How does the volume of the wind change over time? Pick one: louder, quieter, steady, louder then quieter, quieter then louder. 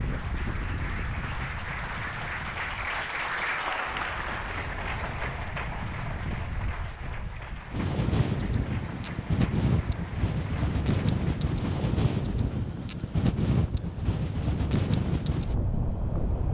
louder.